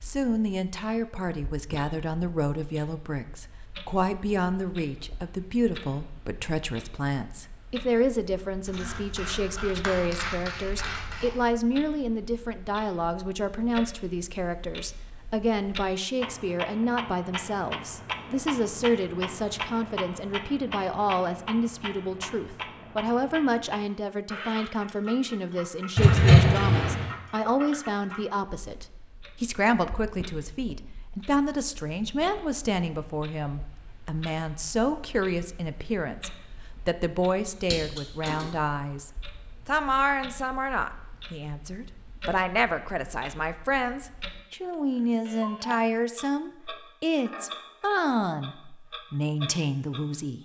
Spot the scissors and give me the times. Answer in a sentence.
You can hear the scissors from 8.7 to 11.3 s, from 25.9 to 27.1 s and from 37.7 to 38.5 s.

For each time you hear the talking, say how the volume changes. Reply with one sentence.
The talking can be heard from 0.0 to 50.3 s, at a steady volume.